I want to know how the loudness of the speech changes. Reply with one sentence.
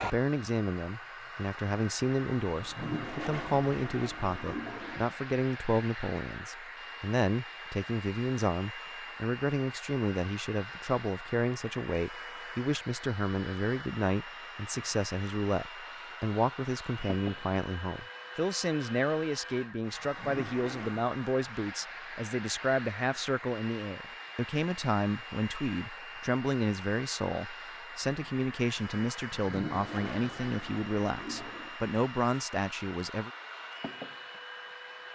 The volume of the speech stays about the same.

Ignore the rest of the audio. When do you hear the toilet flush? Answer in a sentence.
You can hear the toilet flush from 2.5 to 5.2 s, from 19.9 to 21.1 s and from 29.1 to 31.8 s.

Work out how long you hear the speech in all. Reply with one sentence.
You can hear the speech for 33 seconds altogether.